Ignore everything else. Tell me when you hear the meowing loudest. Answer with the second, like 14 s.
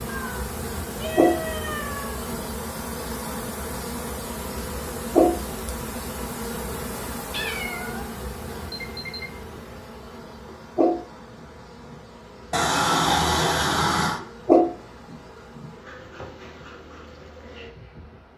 13 s.